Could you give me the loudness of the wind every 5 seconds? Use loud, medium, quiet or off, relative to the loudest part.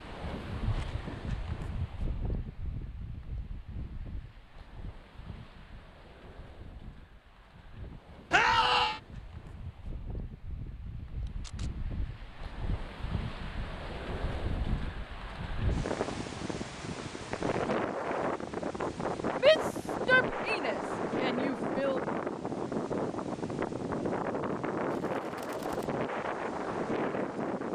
medium, quiet, medium, loud, loud, loud.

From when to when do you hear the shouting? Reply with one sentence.
You can hear the shouting from 8.3 to 9.0 s and from 19.3 to 22.0 s.